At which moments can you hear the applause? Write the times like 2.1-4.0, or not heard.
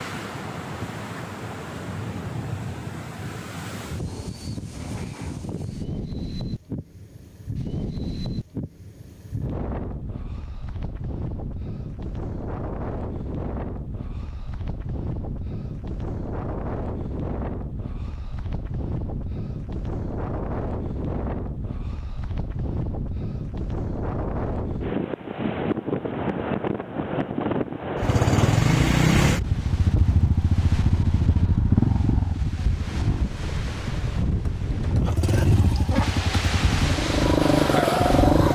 not heard.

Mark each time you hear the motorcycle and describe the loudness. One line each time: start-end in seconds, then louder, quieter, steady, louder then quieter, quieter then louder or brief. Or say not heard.
27.9-38.5 quieter then louder.